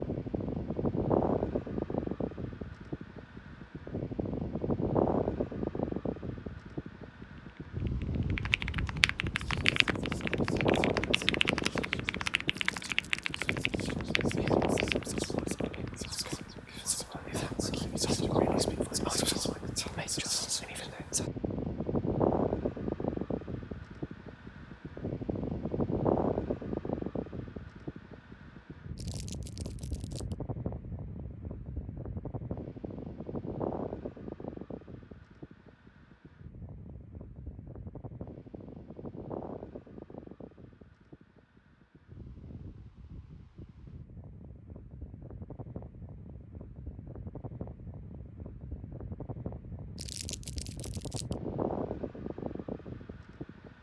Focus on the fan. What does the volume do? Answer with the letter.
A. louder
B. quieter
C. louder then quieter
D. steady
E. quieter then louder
B.